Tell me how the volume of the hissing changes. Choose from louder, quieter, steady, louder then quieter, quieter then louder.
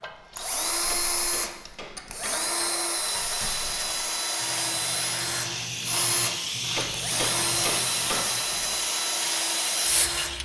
louder.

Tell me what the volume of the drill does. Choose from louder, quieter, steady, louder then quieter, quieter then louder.
steady.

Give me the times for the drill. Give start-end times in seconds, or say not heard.
0.0-10.3.